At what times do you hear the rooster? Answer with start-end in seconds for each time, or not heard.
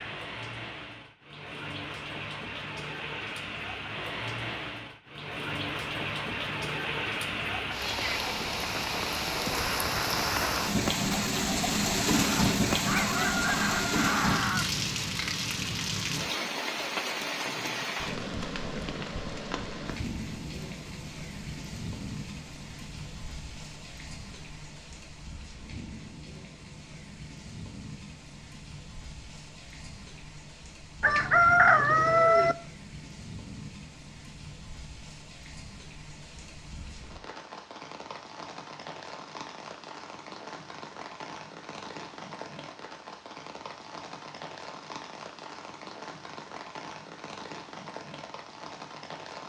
12.7-14.7, 31.0-32.5.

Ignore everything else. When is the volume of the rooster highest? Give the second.
32 s.